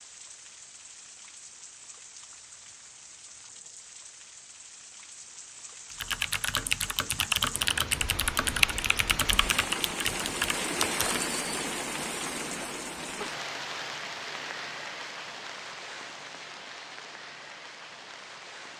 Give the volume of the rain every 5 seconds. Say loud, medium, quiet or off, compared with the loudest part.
quiet, medium, loud, medium.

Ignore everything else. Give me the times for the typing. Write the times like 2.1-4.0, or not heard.
5.9-11.2.